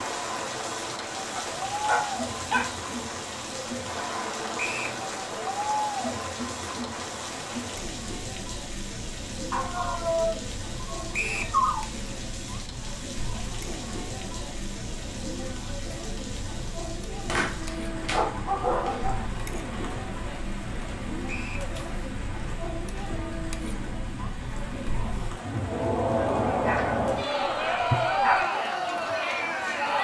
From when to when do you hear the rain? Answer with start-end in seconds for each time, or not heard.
0.0-29.9.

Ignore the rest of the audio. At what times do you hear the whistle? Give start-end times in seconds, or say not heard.
4.5-5.0, 11.1-11.6, 21.2-21.7.